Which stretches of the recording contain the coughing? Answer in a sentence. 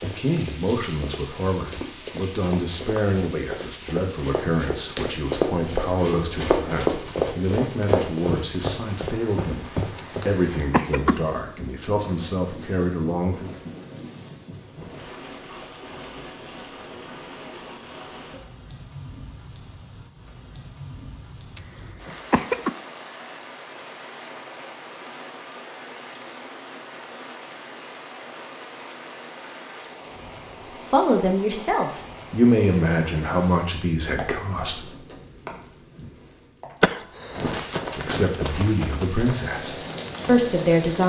The coughing can be heard from 9.9 to 11.3 s, from 21.6 to 22.8 s and from 36.8 to 37.6 s.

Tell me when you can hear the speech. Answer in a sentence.
The speech can be heard from 0.0 to 13.6 s, from 30.9 to 34.9 s and from 38.0 to 41.0 s.